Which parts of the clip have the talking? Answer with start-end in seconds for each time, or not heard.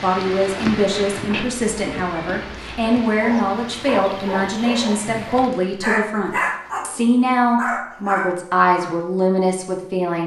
0.0-10.2.